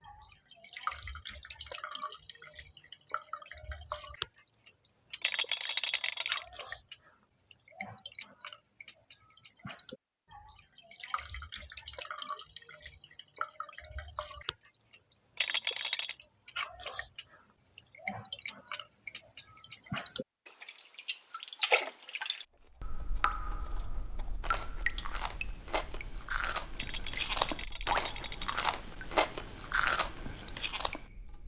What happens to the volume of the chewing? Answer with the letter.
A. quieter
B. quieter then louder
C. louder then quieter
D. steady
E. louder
E.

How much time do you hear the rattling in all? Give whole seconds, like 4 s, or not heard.
4 s.